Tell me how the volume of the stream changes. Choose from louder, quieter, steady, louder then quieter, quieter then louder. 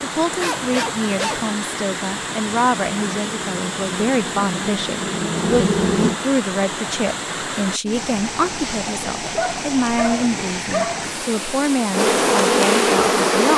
steady.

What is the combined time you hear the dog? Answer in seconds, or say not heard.
3 s.